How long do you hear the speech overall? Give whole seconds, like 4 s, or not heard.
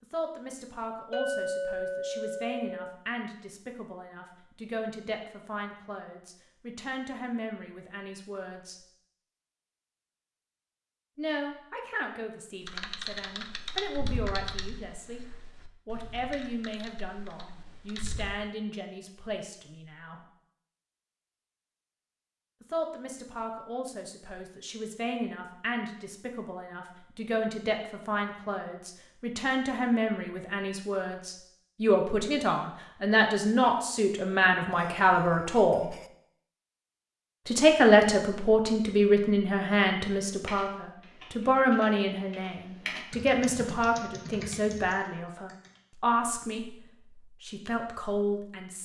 42 s.